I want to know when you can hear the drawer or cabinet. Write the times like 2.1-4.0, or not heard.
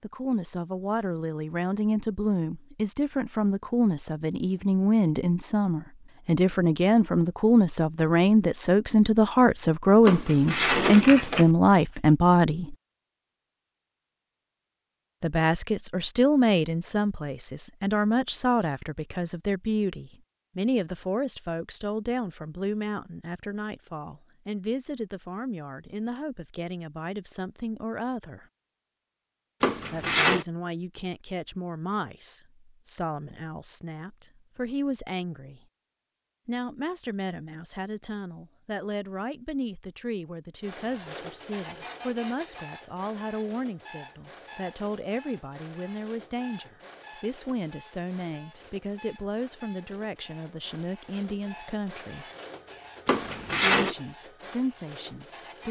10.1-11.5, 29.6-30.4, 53.0-54.0.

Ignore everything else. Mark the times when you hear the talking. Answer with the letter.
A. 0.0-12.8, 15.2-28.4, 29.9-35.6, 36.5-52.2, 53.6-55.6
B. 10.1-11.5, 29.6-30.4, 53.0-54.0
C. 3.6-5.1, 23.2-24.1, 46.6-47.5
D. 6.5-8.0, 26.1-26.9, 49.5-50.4
A.